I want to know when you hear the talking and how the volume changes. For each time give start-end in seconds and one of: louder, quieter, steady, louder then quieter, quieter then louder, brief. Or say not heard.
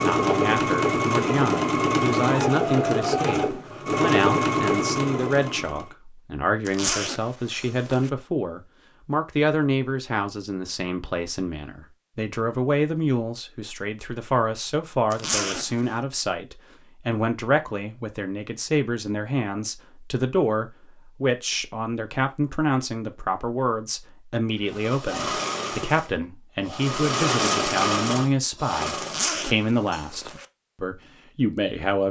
0.0-32.0 steady.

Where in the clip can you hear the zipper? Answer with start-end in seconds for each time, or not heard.
6.7-8.1, 15.1-15.8, 29.0-30.4.